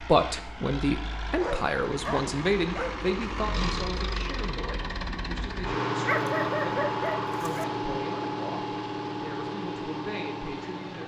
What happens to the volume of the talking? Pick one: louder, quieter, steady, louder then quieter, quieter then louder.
quieter.